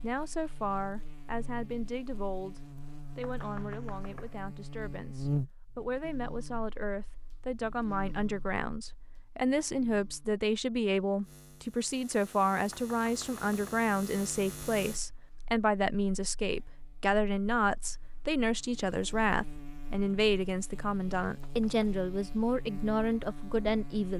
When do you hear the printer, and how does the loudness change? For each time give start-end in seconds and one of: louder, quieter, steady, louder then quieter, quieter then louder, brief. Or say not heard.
not heard.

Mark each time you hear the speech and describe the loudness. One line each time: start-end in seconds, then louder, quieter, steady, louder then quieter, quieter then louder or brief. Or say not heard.
0.0-24.1 louder.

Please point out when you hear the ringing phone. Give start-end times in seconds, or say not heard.
not heard.